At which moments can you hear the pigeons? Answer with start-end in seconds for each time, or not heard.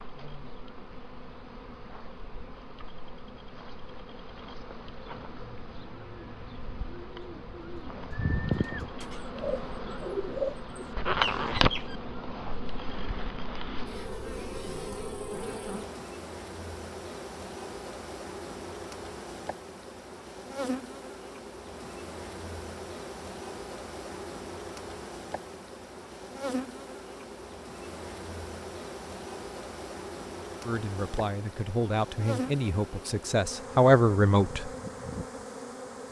5.2-12.0.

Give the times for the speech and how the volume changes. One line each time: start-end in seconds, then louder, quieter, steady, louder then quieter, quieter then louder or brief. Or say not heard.
30.6-34.7 louder.